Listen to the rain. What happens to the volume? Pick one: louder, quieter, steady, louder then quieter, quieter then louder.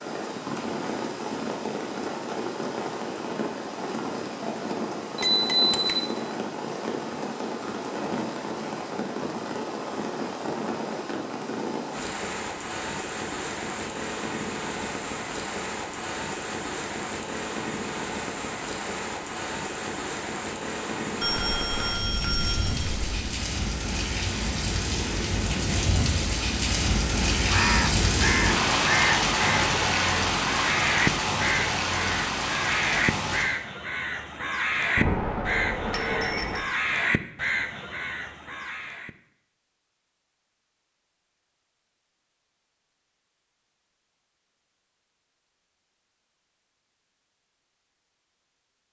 louder.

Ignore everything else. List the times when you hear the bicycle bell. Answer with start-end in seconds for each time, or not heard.
5.2-6.0, 21.2-23.2, 35.0-36.6.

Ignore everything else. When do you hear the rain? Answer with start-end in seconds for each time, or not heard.
0.0-33.5.